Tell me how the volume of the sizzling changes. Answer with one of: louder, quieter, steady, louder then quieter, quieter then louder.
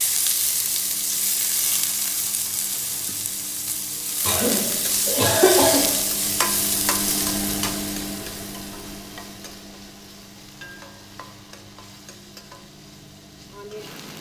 quieter.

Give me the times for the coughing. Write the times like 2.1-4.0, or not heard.
4.2-6.0.